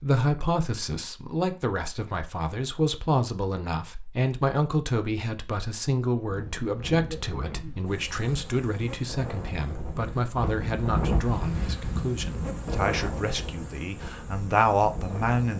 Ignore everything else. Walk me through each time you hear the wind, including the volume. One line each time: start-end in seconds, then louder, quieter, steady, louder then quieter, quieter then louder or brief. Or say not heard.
6.2-15.5 louder then quieter.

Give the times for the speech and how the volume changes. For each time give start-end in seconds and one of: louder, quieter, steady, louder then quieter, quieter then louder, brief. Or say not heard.
0.0-15.5 steady.